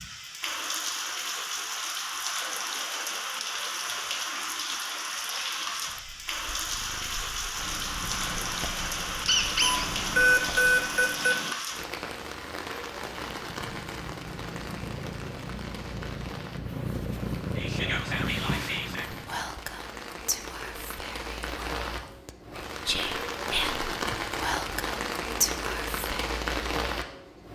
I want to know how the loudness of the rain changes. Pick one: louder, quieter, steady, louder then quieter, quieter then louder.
quieter then louder.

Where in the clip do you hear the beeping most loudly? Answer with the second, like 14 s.
10 s.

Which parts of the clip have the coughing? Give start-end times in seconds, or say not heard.
not heard.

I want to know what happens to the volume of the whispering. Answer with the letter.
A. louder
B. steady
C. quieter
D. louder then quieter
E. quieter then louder
E.